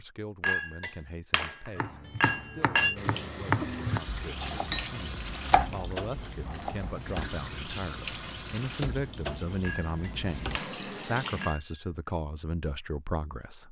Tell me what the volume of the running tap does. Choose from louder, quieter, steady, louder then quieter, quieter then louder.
steady.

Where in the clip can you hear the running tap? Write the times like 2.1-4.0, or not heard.
3.0-11.5.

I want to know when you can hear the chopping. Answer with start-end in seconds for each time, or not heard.
1.8-7.2.